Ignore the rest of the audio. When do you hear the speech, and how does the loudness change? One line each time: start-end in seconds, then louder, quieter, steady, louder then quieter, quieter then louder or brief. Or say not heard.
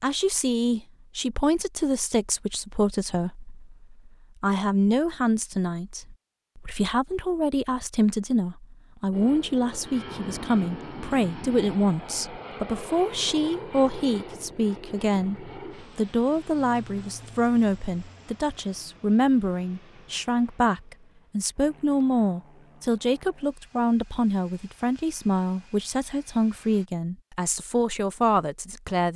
0.0-29.1 steady.